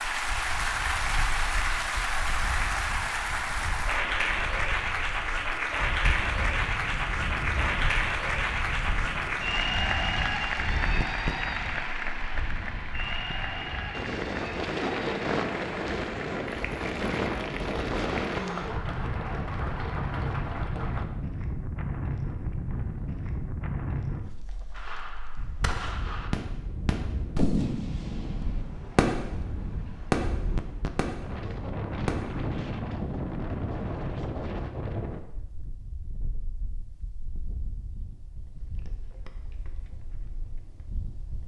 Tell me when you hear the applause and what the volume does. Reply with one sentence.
You can hear the applause from 0.0 to 21.1 s, getting quieter.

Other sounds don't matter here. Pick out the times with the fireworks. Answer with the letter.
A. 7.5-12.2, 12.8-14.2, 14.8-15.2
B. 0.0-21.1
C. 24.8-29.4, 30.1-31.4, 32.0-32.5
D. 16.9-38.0
C.